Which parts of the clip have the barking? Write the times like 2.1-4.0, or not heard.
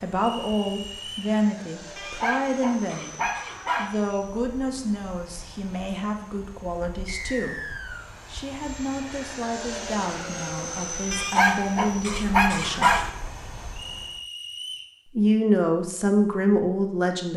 1.9-3.9, 11.1-13.1.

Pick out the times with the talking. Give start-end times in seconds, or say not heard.
0.0-7.5, 8.2-12.9, 15.2-17.3.